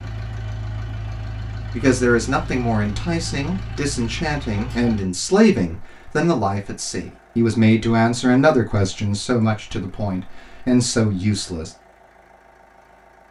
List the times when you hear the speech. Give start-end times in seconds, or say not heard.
1.7-11.7.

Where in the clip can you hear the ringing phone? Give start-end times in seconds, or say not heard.
not heard.